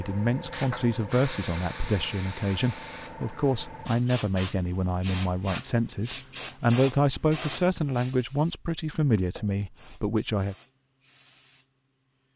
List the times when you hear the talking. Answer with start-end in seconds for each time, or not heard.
0.0-10.6.